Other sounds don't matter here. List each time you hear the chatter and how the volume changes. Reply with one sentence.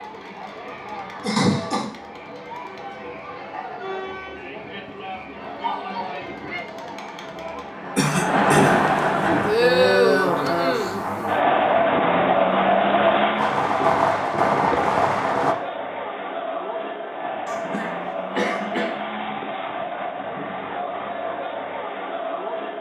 You can hear the chatter from 0.0 to 22.7 s, getting louder then quieter.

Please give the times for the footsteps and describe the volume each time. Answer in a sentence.
You can't hear the footsteps here.